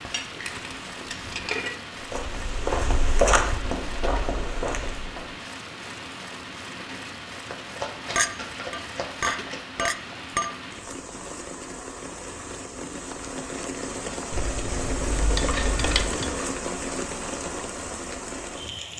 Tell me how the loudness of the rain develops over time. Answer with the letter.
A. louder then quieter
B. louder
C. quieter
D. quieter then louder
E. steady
B.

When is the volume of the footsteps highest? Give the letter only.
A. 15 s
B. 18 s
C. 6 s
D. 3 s
D.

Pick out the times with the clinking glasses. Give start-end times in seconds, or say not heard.
0.0-1.8, 8.2-10.5, 15.3-16.4.